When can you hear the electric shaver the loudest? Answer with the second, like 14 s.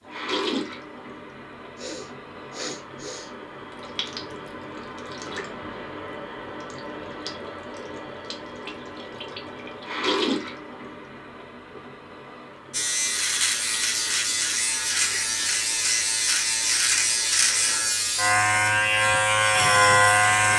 20 s.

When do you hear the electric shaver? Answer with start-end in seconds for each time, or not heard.
12.7-20.5.